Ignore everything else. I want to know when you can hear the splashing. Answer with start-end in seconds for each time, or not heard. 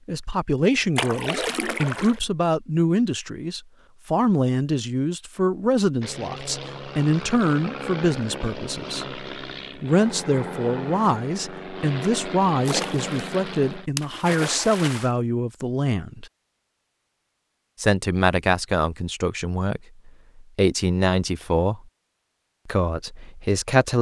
0.9-2.2, 12.7-15.1.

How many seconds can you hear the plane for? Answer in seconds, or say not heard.
8 s.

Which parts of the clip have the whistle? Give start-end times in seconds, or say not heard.
not heard.